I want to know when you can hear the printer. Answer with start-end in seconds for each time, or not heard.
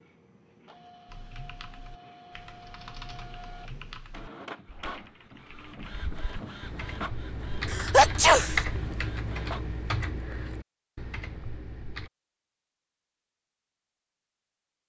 0.0-9.8.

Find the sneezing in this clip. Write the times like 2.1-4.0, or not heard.
7.7-8.6.